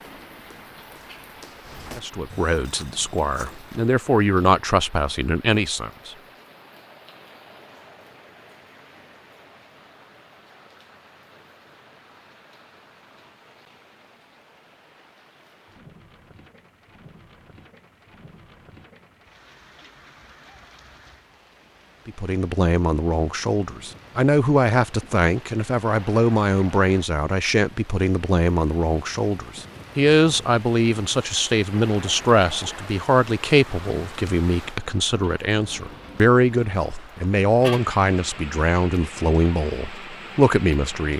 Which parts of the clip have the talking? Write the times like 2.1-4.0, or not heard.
1.9-6.2, 22.1-41.1.